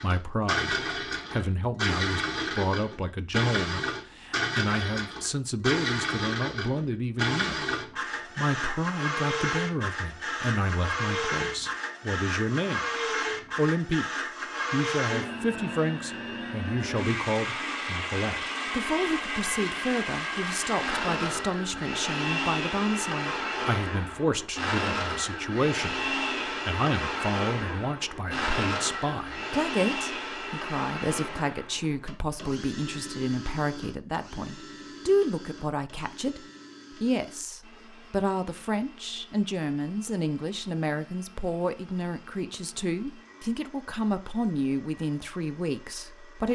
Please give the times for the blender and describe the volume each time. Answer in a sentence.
You can hear the blender from 0.0 to 46.5 s, getting quieter.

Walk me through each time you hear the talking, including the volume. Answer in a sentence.
You can hear the talking from 0.0 to 12.8 s, at a steady volume; briefly from 13.6 to 14.1 s; and from 14.7 to 46.5 s, at a steady volume.